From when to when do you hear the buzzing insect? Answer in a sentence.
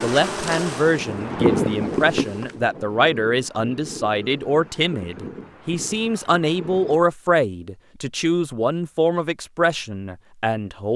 You can hear the buzzing insect from 0.0 to 2.6 s.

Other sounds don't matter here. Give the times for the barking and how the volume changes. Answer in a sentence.
The barking can't be heard in this clip.